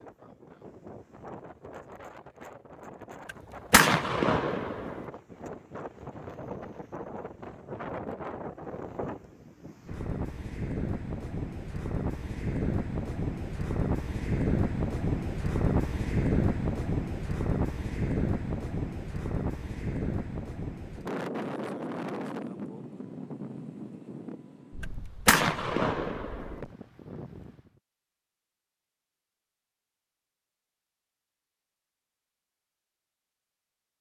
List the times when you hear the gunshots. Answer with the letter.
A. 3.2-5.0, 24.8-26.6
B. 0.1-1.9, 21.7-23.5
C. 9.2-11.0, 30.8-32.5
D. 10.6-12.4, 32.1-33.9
A.